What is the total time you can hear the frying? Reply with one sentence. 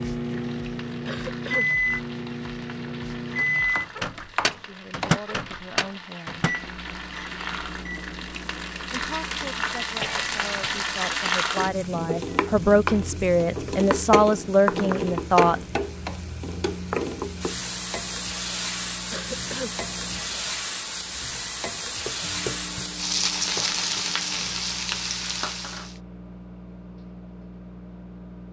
You can hear the frying for 26 seconds altogether.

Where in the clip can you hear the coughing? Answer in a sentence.
You can hear the coughing from 1.1 to 1.7 s, from 10.0 to 10.8 s and from 19.1 to 19.8 s.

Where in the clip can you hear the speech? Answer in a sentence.
You can hear the speech from 4.6 to 6.5 s and from 8.9 to 15.6 s.